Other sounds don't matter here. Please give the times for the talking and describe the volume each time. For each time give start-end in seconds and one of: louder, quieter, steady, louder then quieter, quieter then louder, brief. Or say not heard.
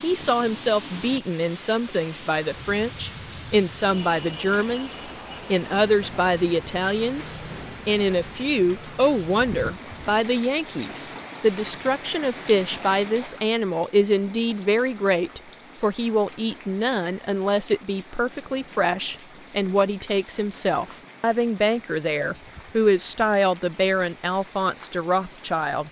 0.0-25.8 steady.